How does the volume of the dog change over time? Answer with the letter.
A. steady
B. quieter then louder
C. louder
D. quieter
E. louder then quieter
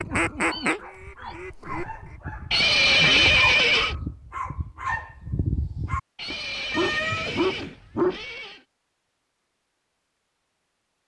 C.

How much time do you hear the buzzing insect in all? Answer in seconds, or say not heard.
not heard.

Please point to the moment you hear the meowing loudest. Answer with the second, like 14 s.
7 s.